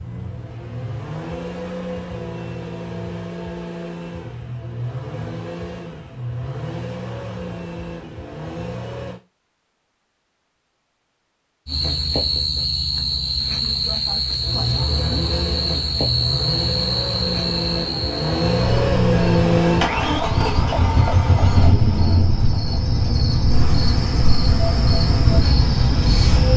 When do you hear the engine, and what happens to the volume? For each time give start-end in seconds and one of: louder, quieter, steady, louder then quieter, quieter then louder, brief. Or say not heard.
0.0-9.2 steady
14.3-26.5 louder then quieter.